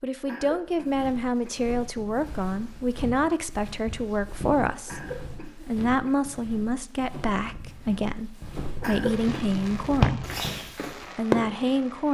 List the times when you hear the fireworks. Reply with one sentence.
The fireworks can be heard from 9.1 to 12.0 s.